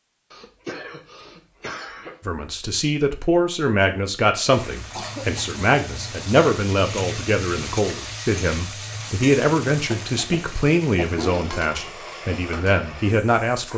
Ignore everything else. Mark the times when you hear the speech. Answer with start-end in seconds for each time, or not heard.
2.2-13.7.